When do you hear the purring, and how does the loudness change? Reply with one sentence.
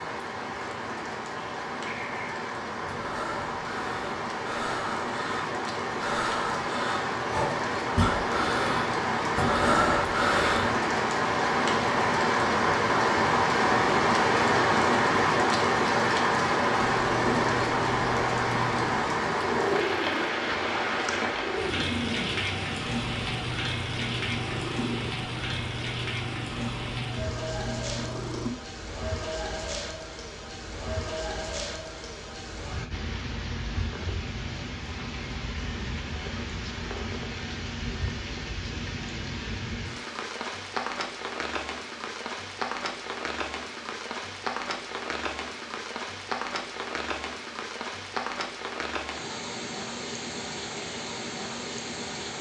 The purring can be heard from 16.8 to 28.5 s, at a steady volume.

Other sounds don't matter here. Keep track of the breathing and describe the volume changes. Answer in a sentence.
The volume of the breathing goes up.